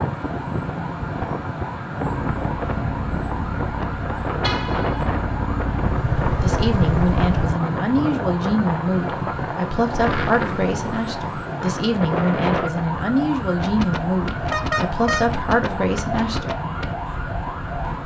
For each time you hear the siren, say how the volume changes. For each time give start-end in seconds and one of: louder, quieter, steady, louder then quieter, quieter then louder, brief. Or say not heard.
0.0-18.0 steady.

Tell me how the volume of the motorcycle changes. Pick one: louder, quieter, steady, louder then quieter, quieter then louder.
louder.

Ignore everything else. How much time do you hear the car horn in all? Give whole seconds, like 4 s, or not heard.
2 s.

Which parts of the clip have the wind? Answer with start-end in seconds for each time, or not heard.
0.0-17.9.